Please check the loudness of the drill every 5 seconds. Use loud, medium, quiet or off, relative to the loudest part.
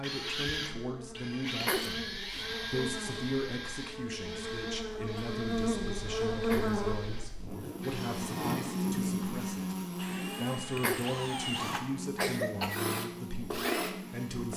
loud, medium, loud.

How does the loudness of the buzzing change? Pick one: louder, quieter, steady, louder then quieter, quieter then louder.
louder then quieter.